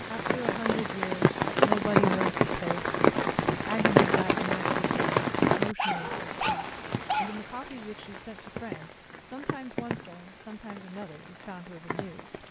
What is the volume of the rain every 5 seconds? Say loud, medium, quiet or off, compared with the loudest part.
loud, medium, quiet.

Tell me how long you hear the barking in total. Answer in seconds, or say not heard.
2 s.